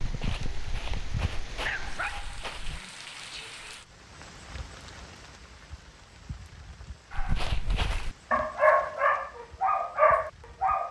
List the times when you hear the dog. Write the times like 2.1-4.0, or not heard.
0.0-2.9, 7.1-10.8.